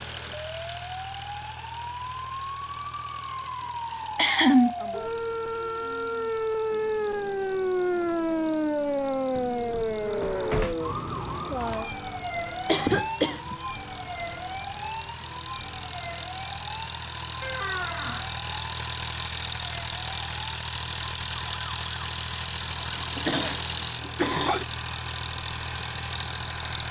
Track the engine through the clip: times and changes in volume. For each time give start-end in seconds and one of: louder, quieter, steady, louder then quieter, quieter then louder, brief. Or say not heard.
0.0-26.8 quieter then louder.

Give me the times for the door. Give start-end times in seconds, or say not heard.
9.3-10.8, 17.4-18.3.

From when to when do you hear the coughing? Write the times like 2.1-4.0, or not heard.
3.9-4.8, 12.7-13.6, 22.9-24.6.